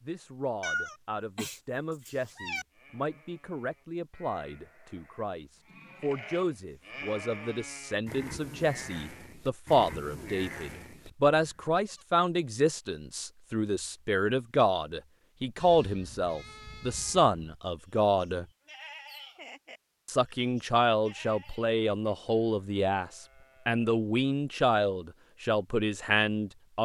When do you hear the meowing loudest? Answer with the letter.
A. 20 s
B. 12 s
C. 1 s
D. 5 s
C.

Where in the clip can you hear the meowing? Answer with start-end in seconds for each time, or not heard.
0.6-2.6.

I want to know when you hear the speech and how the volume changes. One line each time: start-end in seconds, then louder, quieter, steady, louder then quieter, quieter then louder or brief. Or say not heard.
0.0-18.4 louder
20.1-26.8 steady.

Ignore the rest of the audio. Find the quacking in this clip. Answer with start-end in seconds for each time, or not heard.
not heard.